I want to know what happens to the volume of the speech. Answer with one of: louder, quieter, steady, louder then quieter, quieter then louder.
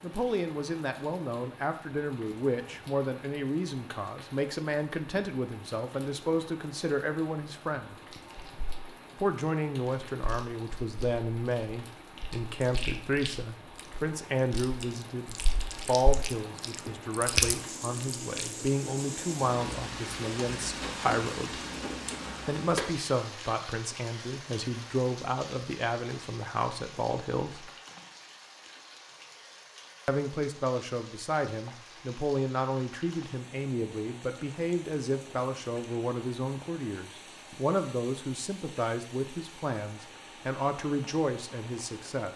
steady.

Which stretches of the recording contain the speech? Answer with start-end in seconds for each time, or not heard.
0.0-8.0, 9.2-21.6, 22.4-27.7, 30.1-42.3.